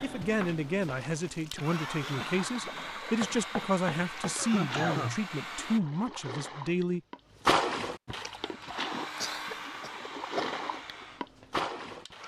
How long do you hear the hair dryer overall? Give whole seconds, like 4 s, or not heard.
10 s.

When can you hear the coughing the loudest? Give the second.
5 s.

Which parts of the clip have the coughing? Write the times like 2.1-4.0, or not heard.
1.6-2.3, 4.3-5.2, 8.4-10.4.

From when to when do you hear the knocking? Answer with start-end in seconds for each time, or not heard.
3.2-4.3.